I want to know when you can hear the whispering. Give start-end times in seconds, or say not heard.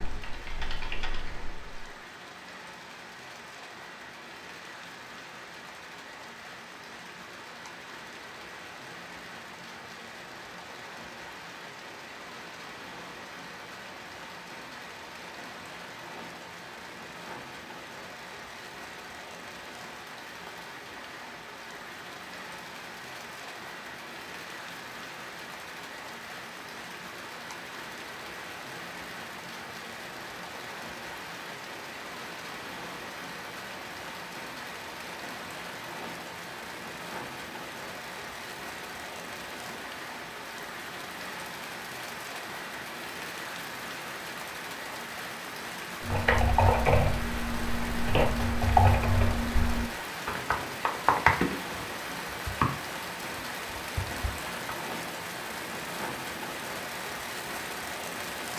not heard.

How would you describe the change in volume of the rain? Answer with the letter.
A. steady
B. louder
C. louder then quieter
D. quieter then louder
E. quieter
B.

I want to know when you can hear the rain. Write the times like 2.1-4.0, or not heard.
0.0-58.5.